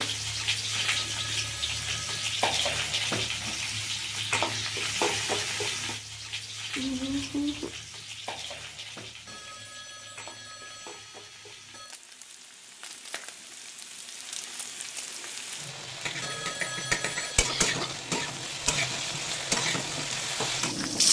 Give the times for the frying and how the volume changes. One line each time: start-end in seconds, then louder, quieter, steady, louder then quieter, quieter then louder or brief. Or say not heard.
0.0-21.0 quieter then louder.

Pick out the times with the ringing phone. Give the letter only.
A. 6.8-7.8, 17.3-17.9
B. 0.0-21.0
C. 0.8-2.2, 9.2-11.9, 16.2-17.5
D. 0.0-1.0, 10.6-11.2
C.